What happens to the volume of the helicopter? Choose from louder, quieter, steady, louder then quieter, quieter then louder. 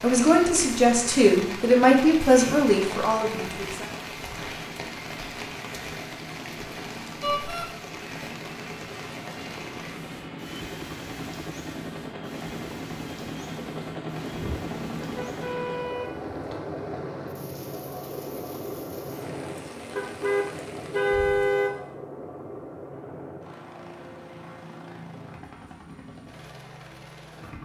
louder then quieter.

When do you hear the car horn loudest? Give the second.
21 s.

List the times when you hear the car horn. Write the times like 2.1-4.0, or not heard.
7.2-7.7, 14.3-16.6, 19.9-21.8.